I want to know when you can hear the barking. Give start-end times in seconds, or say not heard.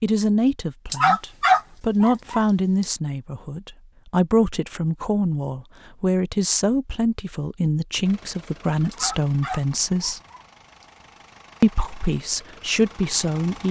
0.9-2.9, 8.9-10.8.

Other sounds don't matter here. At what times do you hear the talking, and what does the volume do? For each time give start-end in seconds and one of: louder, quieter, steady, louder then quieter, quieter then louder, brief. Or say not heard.
0.0-10.2 steady
11.6-13.6 brief.